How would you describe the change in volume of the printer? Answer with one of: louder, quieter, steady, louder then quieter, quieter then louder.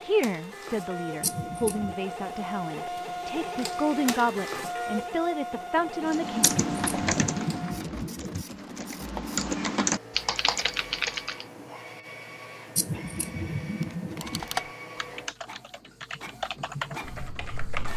quieter.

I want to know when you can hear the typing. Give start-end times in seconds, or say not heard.
6.0-11.4, 14.2-17.9.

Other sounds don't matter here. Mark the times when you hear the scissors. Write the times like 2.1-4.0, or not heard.
1.2-1.9, 6.4-8.4, 12.8-14.4.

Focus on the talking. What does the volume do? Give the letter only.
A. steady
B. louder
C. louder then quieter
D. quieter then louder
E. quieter
B.